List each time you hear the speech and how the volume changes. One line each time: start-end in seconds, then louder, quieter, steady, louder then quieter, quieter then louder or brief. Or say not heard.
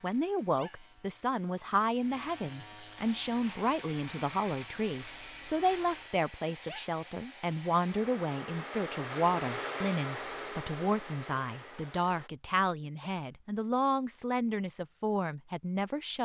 0.0-16.1 steady.